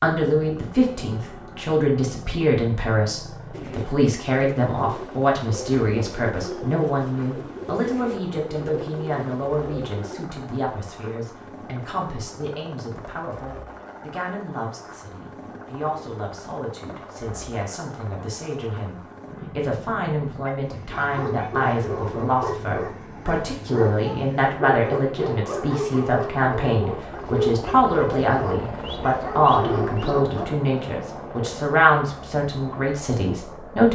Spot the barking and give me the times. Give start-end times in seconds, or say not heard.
20.4-30.4.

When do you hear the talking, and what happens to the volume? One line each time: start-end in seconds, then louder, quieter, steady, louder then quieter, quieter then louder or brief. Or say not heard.
0.0-33.8 quieter then louder.